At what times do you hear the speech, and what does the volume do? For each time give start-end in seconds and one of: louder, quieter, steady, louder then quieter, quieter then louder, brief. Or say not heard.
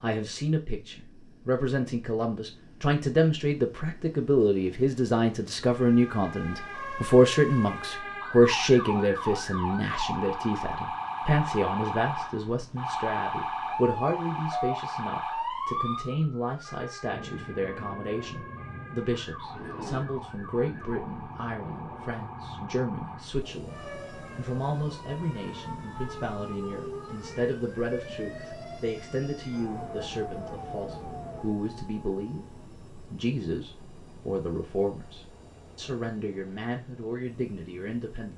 0.0-38.3 quieter.